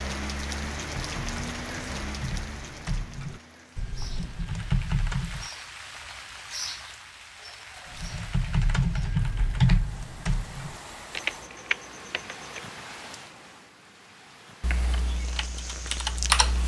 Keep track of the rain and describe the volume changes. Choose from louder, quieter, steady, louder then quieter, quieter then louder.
quieter.